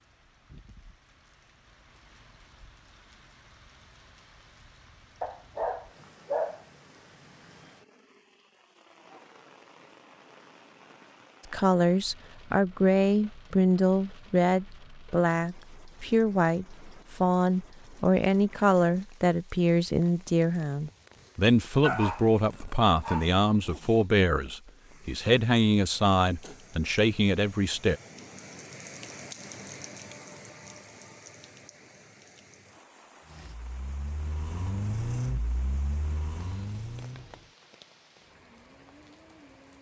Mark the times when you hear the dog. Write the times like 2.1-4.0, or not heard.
5.2-6.7, 21.8-23.4.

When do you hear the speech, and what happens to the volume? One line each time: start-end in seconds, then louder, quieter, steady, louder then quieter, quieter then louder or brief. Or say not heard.
11.5-28.0 steady.